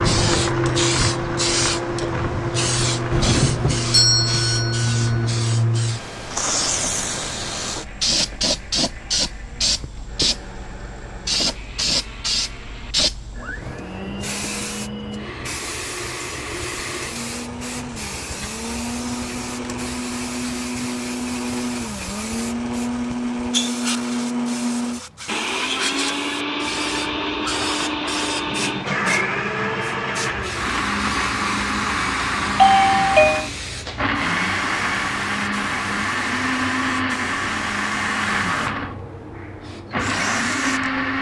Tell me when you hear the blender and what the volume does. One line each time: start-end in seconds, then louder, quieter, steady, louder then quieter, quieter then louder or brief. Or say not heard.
0.0-41.1 quieter then louder.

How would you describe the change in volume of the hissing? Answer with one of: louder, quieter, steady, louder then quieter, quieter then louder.
quieter.